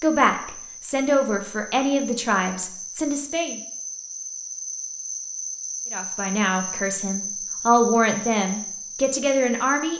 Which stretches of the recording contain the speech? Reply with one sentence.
The speech can be heard from 0.0 to 3.6 s and from 5.9 to 9.9 s.